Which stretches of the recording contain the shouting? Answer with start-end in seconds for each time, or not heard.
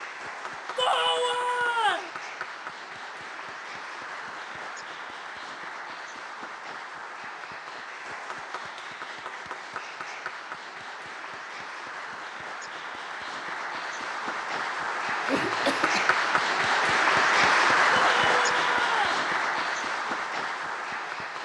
0.8-2.1, 17.9-19.2.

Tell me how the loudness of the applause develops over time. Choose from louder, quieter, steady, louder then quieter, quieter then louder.
louder.